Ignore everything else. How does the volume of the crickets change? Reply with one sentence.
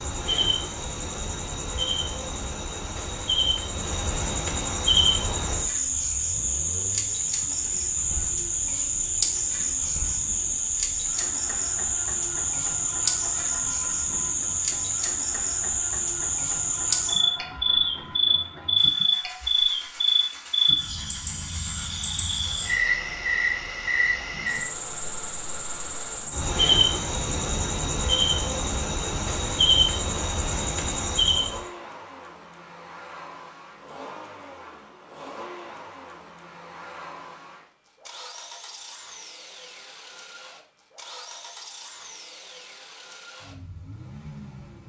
The loudness of the crickets stays about the same.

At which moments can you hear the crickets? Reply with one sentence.
The crickets can be heard from 0.0 to 31.6 s.